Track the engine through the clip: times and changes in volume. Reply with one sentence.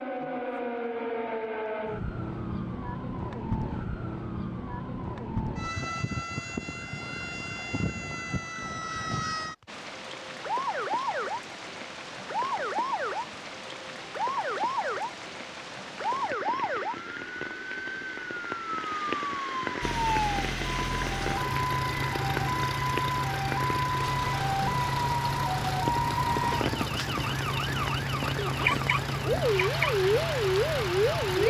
You can hear the engine from 19.8 to 31.4 s, at a steady volume.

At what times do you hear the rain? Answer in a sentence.
The rain can be heard from 9.7 to 31.4 s.